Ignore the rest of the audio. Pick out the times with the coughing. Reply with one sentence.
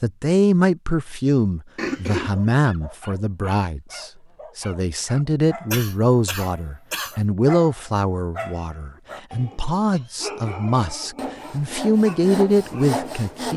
The coughing can be heard from 1.8 to 2.4 s, from 5.7 to 7.2 s and from 9.9 to 10.8 s.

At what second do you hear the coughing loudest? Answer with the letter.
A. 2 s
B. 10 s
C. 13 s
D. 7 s
A.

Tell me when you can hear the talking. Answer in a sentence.
The talking can be heard from 0.0 to 13.5 s.